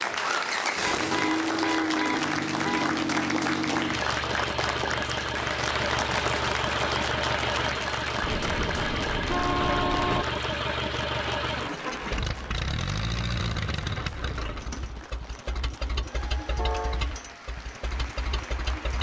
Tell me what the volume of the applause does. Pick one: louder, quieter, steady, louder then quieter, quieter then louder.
quieter.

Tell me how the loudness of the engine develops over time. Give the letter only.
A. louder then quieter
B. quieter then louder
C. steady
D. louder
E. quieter
E.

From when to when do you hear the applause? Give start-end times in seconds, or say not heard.
0.0-18.9.